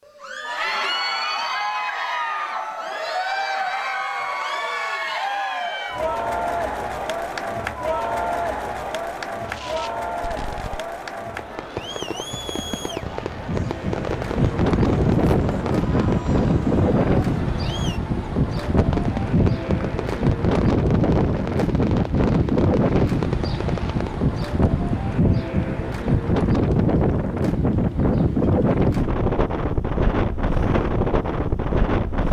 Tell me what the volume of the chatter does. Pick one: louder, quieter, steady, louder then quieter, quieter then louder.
quieter.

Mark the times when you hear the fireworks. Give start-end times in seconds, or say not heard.
9.4-16.5, 18.7-24.1.